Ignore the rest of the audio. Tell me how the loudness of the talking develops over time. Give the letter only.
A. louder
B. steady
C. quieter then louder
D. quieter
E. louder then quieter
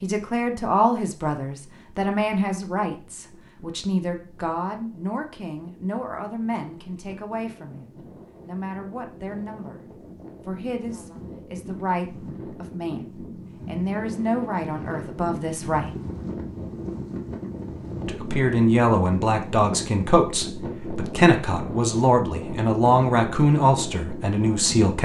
C.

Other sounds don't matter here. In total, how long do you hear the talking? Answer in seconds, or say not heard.
22 s.